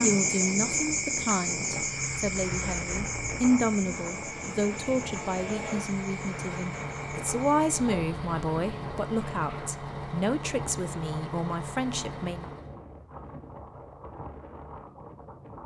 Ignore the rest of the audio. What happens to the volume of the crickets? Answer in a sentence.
The loudness of the crickets goes down.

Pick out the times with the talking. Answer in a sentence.
The talking can be heard from 0.0 to 12.5 s.